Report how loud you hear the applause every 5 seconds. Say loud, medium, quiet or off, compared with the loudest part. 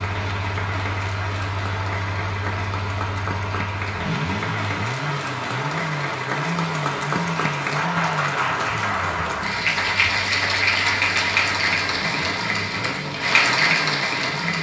medium, loud, loud.